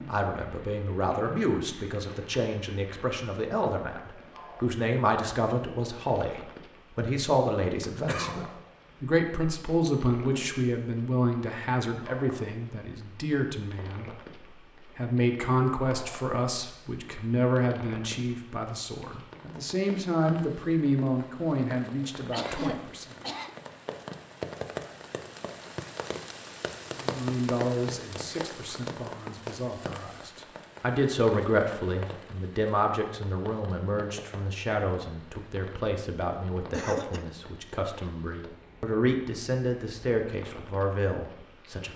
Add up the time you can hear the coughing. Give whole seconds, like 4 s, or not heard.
2 s.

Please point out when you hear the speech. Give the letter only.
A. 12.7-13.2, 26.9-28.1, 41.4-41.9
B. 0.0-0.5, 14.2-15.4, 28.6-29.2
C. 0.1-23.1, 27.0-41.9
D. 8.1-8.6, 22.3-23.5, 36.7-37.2
C.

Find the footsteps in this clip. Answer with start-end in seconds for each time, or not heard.
not heard.